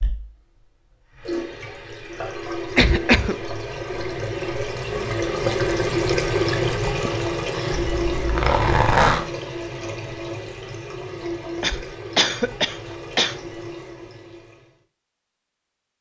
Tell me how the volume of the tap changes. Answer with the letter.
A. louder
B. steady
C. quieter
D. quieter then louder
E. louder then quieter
E.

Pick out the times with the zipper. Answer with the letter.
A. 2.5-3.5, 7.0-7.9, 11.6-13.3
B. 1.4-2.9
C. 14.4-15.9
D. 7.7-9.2
D.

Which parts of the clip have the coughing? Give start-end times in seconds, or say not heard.
2.5-3.5, 7.0-7.9, 11.6-13.3.